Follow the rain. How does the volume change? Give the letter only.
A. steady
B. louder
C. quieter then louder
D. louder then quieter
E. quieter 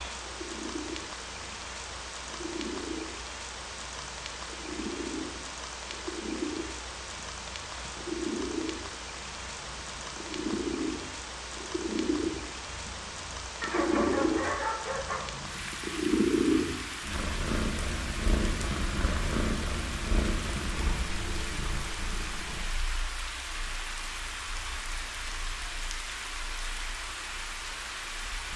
A.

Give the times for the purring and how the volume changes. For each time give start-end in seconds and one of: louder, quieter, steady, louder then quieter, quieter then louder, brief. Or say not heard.
0.2-28.5 louder then quieter.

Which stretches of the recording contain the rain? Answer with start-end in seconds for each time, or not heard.
0.0-28.5.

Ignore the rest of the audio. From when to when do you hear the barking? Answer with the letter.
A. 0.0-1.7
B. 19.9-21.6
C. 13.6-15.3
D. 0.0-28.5
C.